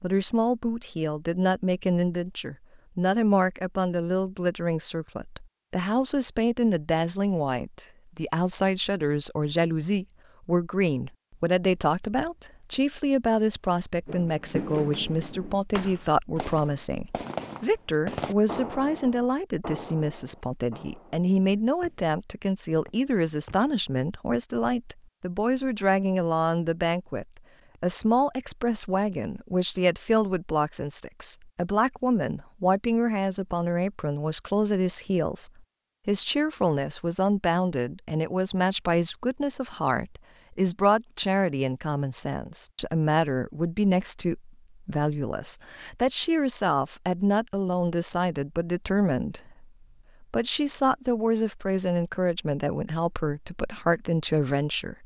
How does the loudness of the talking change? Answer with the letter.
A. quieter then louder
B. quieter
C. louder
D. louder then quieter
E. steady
E.